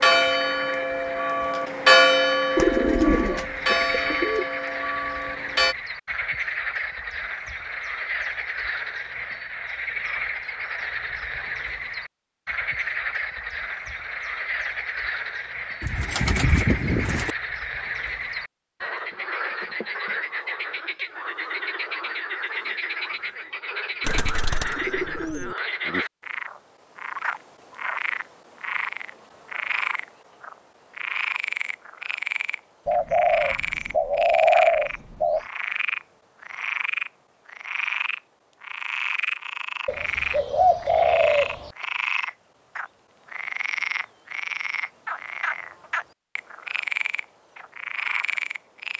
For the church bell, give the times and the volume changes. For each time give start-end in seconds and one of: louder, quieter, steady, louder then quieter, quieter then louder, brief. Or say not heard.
0.0-5.8 louder then quieter.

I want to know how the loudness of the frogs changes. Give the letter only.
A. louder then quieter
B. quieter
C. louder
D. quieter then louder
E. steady
E.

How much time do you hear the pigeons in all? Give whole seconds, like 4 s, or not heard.
9 s.